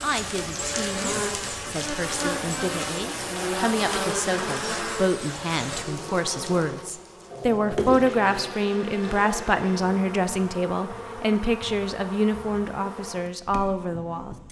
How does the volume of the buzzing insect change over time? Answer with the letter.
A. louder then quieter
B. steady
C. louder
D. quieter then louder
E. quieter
E.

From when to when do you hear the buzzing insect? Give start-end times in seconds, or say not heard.
0.0-14.4.